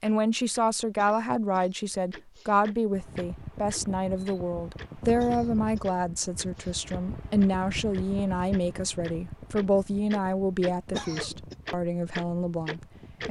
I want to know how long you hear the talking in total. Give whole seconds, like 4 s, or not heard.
13 s.